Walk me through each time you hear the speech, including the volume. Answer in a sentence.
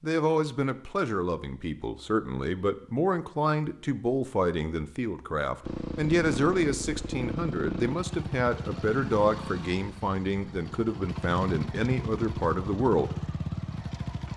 You can hear the speech from 0.0 to 13.2 s, at a steady volume.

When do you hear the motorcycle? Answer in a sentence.
You can hear the motorcycle from 5.6 to 14.3 s.